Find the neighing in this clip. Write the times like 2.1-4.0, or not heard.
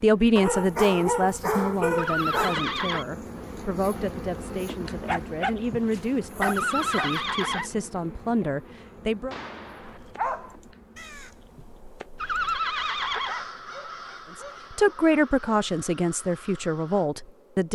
1.9-3.0, 6.5-7.7, 12.2-13.4.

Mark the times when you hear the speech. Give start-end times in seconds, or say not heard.
0.0-9.3, 14.3-17.6.